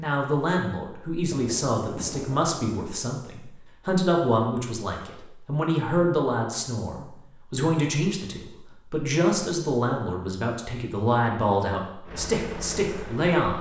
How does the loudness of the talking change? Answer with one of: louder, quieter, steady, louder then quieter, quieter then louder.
steady.